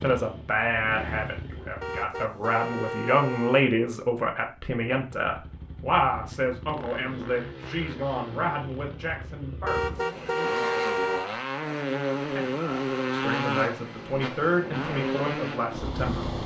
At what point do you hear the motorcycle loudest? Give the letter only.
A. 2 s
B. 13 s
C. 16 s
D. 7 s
B.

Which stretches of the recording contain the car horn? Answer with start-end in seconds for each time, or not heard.
1.8-3.7, 9.7-11.3.